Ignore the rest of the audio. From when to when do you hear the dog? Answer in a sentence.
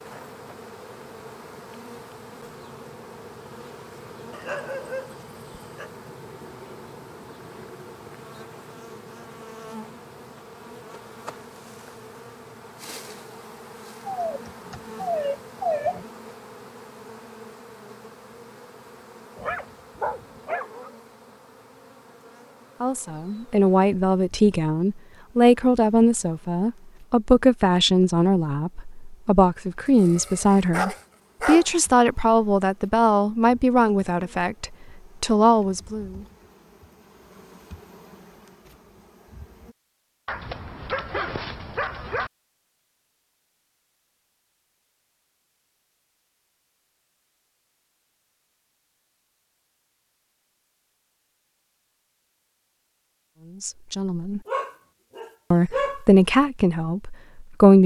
The dog can be heard from 4.3 to 5.9 s, from 14.1 to 16.1 s, from 19.4 to 20.9 s, from 29.9 to 31.7 s, from 40.2 to 42.3 s and from 54.5 to 56.0 s.